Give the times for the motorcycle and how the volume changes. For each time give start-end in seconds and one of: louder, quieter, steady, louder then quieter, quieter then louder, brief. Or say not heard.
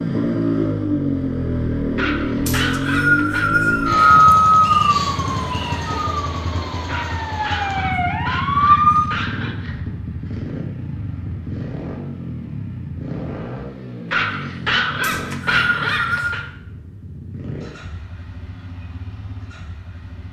0.0-20.2 quieter.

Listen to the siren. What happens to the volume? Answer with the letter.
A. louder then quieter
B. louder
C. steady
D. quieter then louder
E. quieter
D.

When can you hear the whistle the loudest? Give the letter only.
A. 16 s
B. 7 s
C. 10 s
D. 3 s
D.